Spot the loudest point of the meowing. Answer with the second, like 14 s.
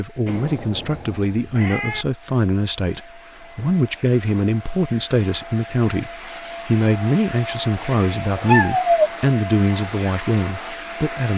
9 s.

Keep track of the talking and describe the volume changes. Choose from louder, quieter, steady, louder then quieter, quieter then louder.
steady.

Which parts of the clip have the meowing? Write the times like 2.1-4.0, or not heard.
0.2-2.0, 7.9-9.1.